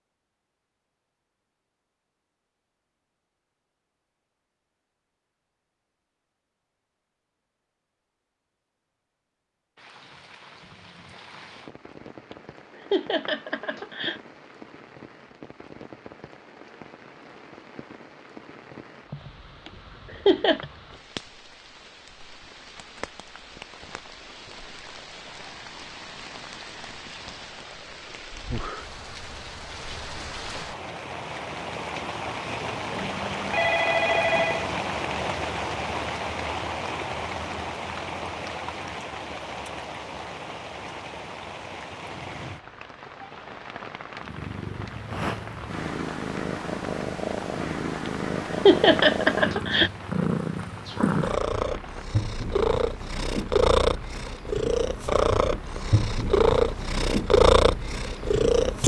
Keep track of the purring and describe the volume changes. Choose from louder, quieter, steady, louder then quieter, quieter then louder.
louder.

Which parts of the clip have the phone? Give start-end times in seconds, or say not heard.
33.4-34.6.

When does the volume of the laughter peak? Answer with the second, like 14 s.
49 s.